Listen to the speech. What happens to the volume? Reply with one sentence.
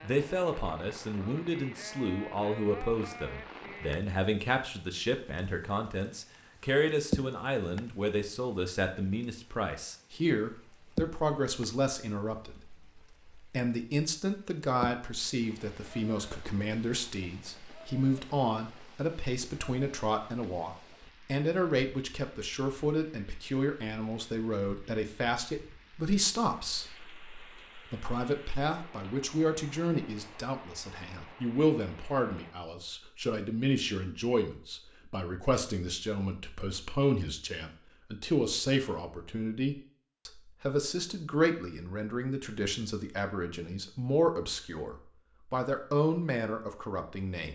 The loudness of the speech stays about the same.